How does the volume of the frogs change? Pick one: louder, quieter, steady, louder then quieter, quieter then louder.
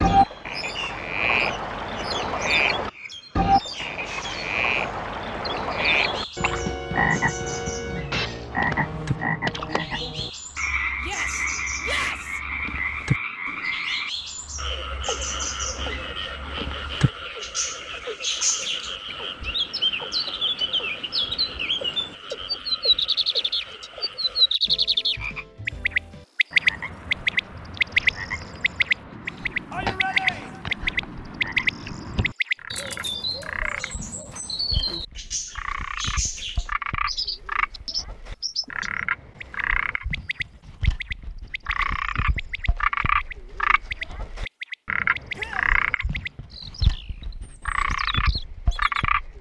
quieter then louder.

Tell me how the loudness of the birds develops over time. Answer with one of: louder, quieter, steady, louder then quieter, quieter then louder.
louder then quieter.